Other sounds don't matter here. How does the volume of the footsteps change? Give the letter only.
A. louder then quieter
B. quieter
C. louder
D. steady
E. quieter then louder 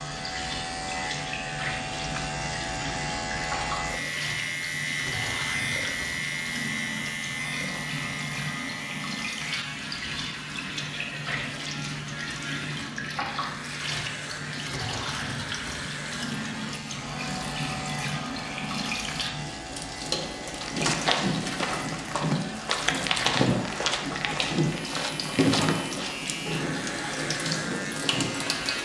B.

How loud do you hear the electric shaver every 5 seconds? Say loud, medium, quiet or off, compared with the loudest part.
loud, loud, medium, medium, medium, loud.